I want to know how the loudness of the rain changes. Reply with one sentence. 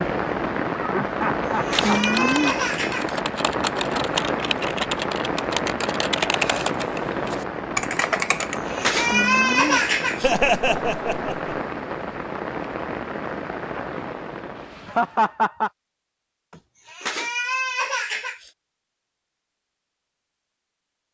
The loudness of the rain goes down.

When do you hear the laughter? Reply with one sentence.
The laughter can be heard from 0.8 to 2.1 s, from 10.2 to 11.6 s and from 14.7 to 15.7 s.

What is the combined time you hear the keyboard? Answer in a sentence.
You can hear the keyboard for 7 seconds altogether.